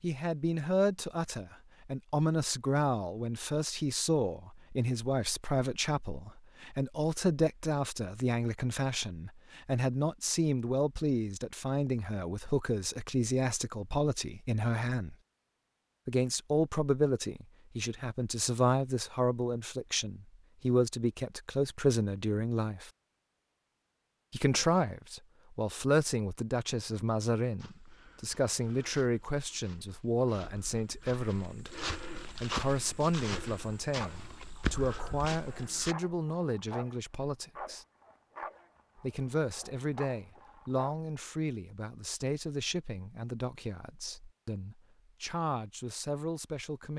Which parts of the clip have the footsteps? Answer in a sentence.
The footsteps can be heard from 27.6 to 36.0 s.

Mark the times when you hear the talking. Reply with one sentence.
You can hear the talking from 0.0 to 15.2 s, from 16.1 to 22.9 s, from 24.3 to 37.9 s and from 39.0 to 46.9 s.